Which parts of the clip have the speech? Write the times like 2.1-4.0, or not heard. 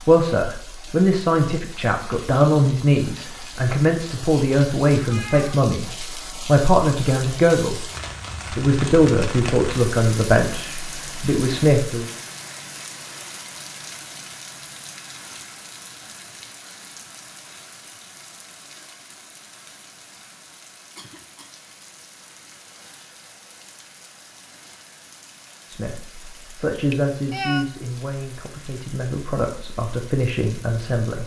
0.1-7.8, 8.5-12.1, 25.6-31.2.